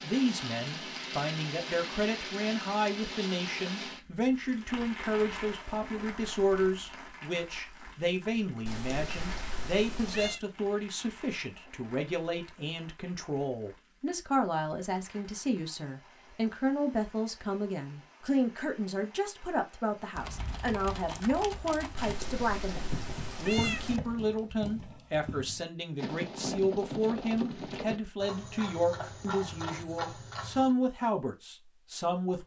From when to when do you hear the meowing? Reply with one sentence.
You can hear the meowing from 8.7 to 10.4 s and from 21.9 to 24.0 s.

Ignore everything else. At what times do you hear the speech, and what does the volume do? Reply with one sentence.
The speech can be heard from 0.0 to 32.4 s, at a steady volume.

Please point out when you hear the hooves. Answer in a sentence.
You can hear the hooves from 20.1 to 30.8 s.